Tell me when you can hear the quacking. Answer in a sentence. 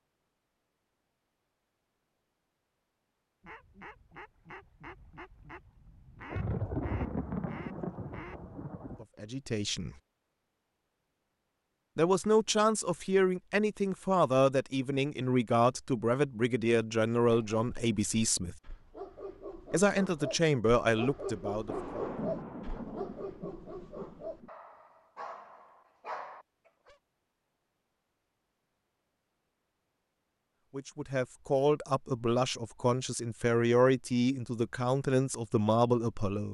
You can hear the quacking from 3.4 to 8.6 s.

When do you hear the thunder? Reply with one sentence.
The thunder can be heard from 6.3 to 9.1 s and from 21.6 to 24.5 s.